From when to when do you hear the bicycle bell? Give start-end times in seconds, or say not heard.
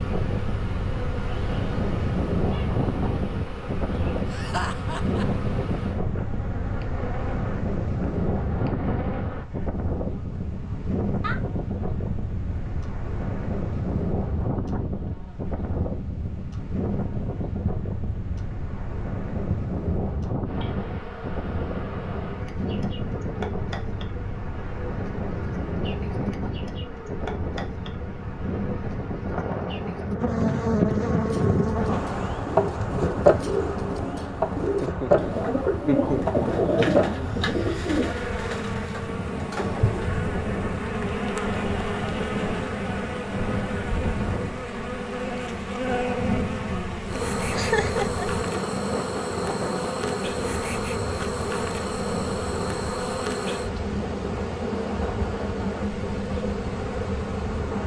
not heard.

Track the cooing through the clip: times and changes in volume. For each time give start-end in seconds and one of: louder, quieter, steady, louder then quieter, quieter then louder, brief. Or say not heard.
31.2-40.1 louder then quieter.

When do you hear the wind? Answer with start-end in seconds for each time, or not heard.
0.0-57.8.